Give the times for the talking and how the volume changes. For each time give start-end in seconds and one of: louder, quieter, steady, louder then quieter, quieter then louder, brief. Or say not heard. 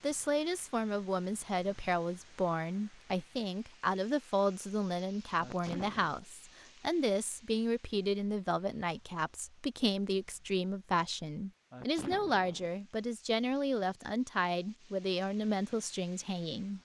0.0-16.8 steady.